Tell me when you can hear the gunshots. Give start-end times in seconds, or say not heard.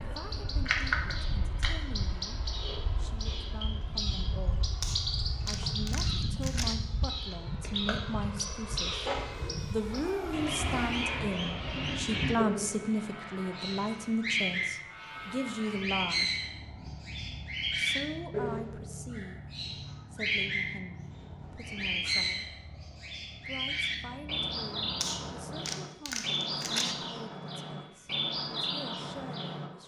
4.8-6.8, 25.0-26.9.